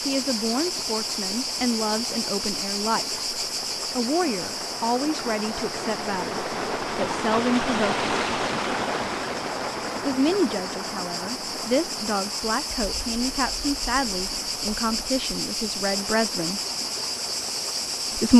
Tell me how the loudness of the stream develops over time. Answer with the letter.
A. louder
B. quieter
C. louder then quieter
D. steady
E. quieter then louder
C.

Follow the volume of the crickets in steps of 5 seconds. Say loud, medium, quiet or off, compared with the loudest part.
loud, medium, loud, loud.